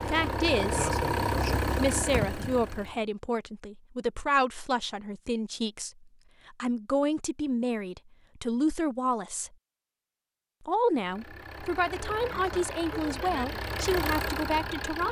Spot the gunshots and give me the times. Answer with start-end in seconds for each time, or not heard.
not heard.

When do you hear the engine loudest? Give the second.
1 s.